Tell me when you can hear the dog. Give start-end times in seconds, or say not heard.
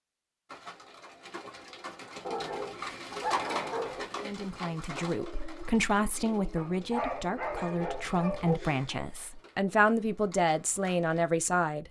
2.2-4.0, 6.5-8.6.